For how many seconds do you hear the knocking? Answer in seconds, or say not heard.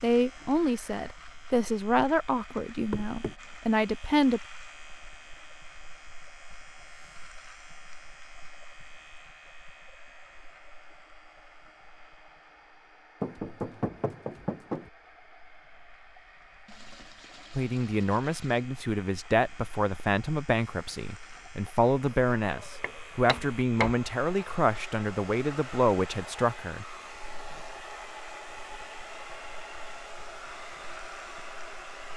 3 s.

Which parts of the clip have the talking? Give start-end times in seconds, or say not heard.
0.0-4.4, 17.6-26.9.